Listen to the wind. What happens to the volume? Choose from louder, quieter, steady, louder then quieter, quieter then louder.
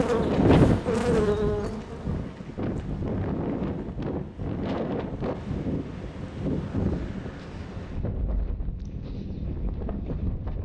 quieter.